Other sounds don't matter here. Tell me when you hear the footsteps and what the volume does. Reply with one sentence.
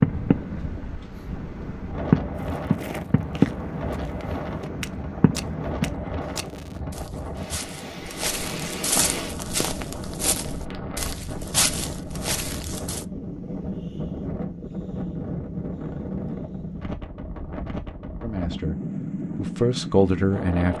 The footsteps can be heard from 2.4 to 13.1 s, getting louder.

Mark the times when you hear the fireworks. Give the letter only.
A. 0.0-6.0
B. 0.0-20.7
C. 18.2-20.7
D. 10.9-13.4
A.